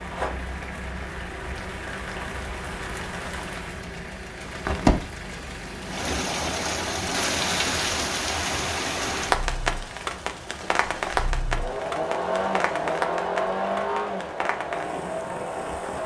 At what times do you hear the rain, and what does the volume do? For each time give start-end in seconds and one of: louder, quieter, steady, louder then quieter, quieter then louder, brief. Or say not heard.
0.0-16.0 louder then quieter.